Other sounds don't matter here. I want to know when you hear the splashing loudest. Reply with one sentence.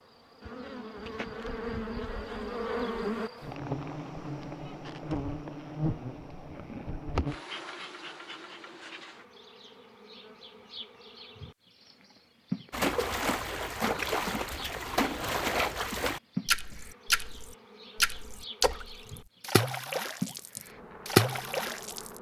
The volume of the splashing peaks at 21 seconds.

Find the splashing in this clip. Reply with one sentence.
The splashing can be heard from 12.7 to 22.1 s.